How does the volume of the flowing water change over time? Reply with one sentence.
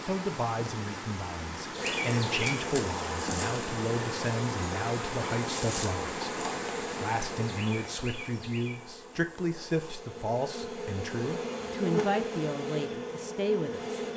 The volume of the flowing water stays about the same.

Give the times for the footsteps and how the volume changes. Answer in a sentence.
The footsteps can't be heard in this clip.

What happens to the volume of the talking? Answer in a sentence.
The volume of the talking stays about the same.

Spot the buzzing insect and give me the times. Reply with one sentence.
The buzzing insect can be heard from 1.7 to 14.1 s.